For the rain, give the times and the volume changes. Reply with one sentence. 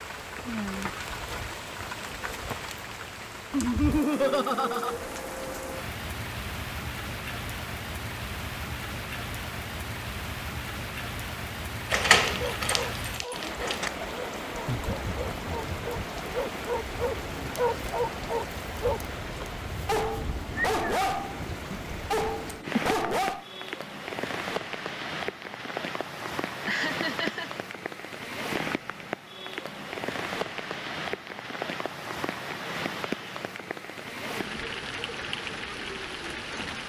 The rain can be heard from 0.0 to 36.8 s, at a steady volume.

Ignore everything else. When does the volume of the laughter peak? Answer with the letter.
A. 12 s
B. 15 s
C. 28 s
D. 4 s
D.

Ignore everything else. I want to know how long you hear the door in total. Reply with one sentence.
You can hear the door for 2 seconds altogether.